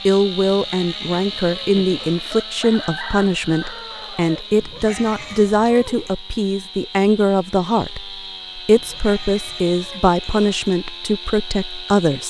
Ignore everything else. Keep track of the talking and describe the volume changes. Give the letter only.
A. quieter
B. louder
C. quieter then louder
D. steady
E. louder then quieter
D.